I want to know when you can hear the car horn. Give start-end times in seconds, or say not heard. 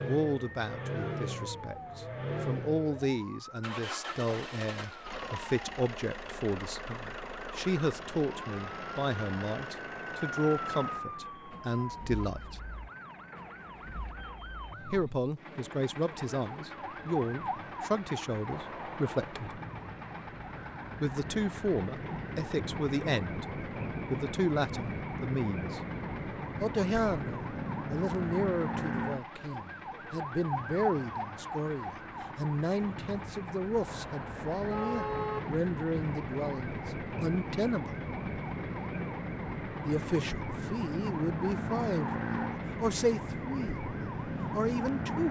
18.5-19.4, 33.9-35.5.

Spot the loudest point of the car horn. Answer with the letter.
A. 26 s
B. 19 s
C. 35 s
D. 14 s
C.